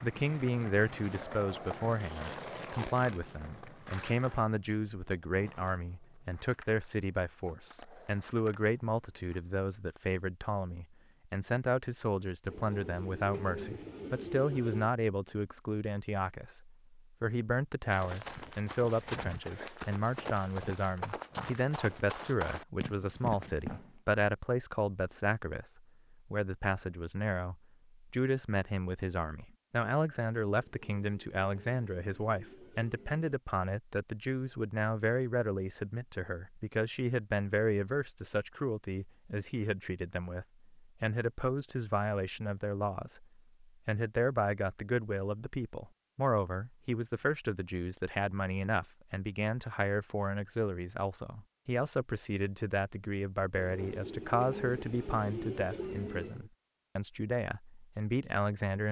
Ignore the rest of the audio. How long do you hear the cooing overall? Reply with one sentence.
The cooing can be heard for 8 seconds in total.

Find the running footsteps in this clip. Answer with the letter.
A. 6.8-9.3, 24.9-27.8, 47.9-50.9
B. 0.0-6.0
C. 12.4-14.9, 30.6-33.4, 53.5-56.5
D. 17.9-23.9
D.